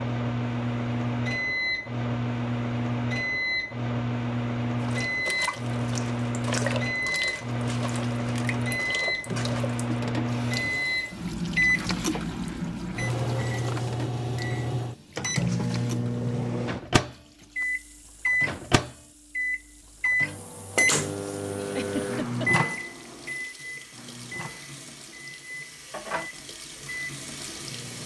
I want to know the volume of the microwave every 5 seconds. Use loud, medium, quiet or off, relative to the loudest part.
loud, loud, loud, loud, loud, quiet.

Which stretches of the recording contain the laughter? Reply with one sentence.
You can hear the laughter from 21.7 to 22.5 s.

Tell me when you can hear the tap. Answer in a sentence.
The tap can be heard from 4.8 to 28.0 s.